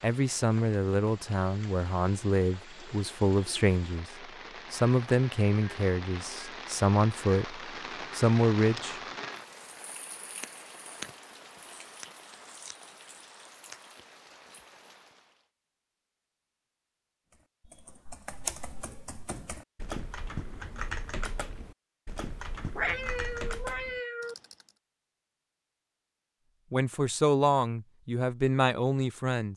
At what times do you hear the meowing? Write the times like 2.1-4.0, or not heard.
22.8-24.4.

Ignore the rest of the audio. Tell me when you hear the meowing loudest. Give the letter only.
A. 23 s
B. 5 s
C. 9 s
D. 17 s
A.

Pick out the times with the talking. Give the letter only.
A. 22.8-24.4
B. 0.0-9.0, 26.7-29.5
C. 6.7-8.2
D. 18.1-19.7
B.